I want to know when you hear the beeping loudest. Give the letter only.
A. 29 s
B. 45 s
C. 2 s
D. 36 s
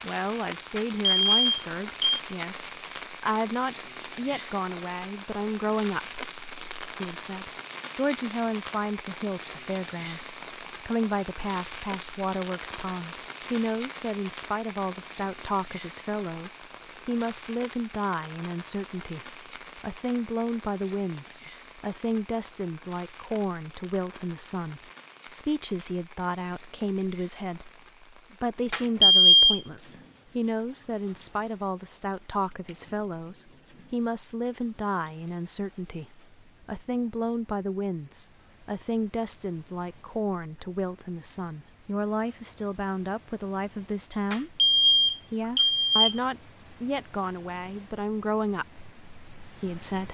A.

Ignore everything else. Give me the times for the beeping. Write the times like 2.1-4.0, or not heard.
0.8-2.2, 28.7-29.6, 44.3-46.2.